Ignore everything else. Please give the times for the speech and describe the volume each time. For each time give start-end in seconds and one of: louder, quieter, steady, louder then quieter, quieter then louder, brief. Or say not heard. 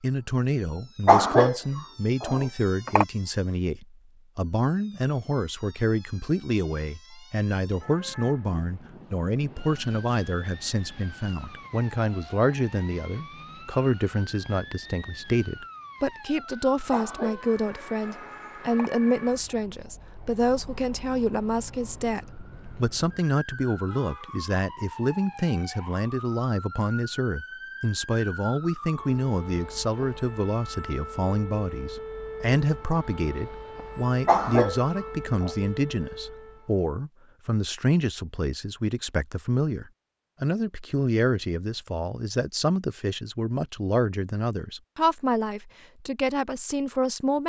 0.0-47.4 steady.